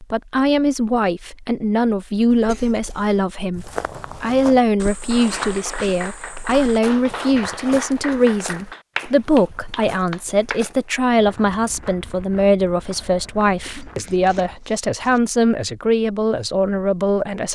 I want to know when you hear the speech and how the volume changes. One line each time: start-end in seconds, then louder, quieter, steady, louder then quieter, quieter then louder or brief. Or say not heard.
0.0-17.5 steady.